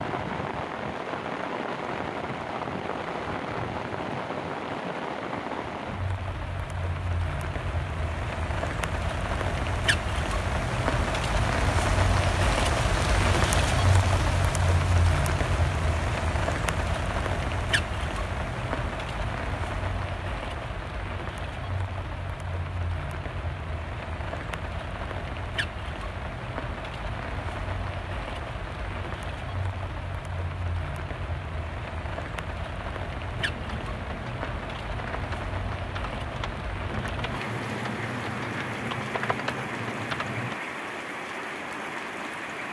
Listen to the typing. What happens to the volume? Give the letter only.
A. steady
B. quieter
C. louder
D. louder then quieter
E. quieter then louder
C.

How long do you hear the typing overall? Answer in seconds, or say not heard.
7 s.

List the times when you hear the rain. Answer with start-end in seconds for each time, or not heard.
0.0-42.6.